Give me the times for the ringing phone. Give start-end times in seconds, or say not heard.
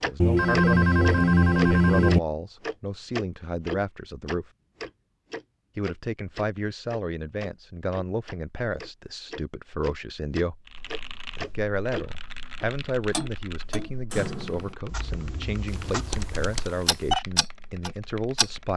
0.2-2.2, 15.7-17.2.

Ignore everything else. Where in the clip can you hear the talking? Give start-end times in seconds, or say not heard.
0.0-4.5, 5.8-10.7, 11.3-18.7.